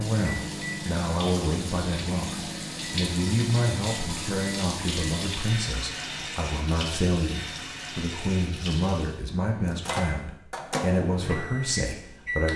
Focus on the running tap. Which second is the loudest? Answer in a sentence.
The volume of the running tap peaks at 5 seconds.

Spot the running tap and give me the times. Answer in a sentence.
The running tap can be heard from 0.0 to 9.2 s.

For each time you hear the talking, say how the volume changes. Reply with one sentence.
You can hear the talking from 0.0 to 12.5 s, at a steady volume.